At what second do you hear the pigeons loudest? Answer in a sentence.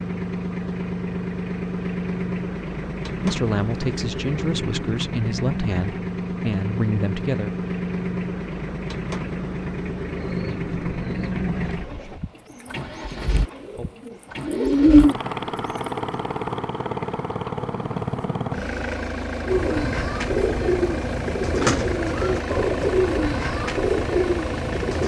The loudest moment of the pigeons is at 15 seconds.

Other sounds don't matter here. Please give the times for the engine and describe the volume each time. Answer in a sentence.
You can hear the engine from 0.0 to 25.0 s, at a steady volume.